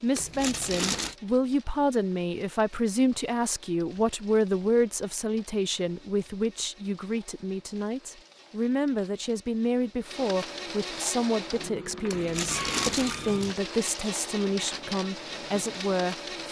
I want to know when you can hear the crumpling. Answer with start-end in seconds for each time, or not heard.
0.1-1.1, 12.1-13.6.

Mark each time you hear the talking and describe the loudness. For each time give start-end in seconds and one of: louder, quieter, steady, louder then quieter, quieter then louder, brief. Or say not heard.
0.0-16.4 steady.